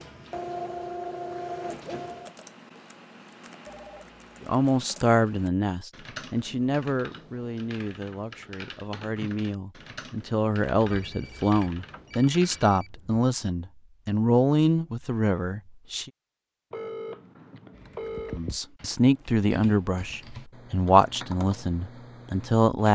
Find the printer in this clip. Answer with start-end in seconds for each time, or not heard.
0.0-2.3.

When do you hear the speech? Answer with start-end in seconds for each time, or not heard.
4.4-16.1, 18.4-22.9.